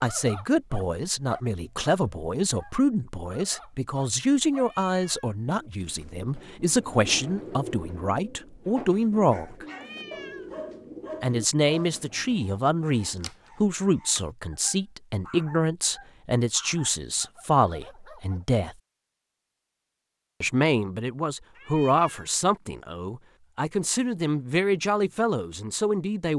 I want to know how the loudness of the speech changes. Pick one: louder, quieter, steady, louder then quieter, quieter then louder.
steady.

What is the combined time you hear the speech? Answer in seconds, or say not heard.
23 s.